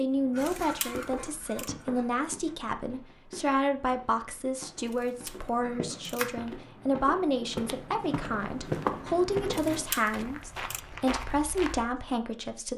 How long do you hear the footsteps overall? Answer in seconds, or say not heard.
12 s.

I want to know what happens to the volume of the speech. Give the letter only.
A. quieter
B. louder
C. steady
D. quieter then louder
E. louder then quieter
C.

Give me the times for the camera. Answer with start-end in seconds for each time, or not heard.
0.4-1.7, 4.9-6.4, 9.5-10.8.